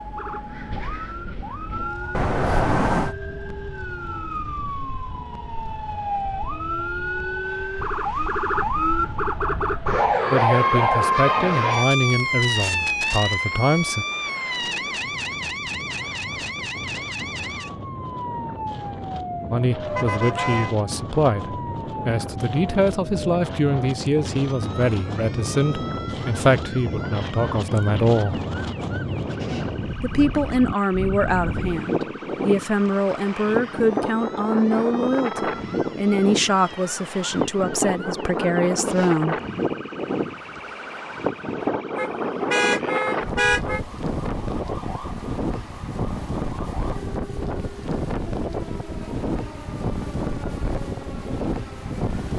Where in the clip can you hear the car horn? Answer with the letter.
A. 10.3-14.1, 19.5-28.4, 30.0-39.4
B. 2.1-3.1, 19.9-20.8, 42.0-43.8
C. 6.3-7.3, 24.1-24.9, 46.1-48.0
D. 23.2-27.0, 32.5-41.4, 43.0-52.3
B.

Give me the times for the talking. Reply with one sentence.
The talking can be heard from 10.3 to 14.1 s, from 19.5 to 28.4 s and from 30.0 to 39.4 s.